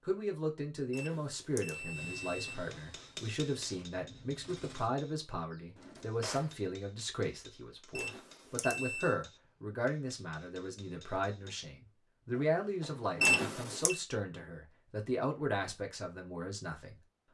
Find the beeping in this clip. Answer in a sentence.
You can hear the beeping from 0.9 to 2.5 s, from 8.0 to 9.2 s and from 13.2 to 14.0 s.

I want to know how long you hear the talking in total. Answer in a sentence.
The talking can be heard for 17 seconds in total.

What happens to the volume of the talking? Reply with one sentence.
The volume of the talking stays about the same.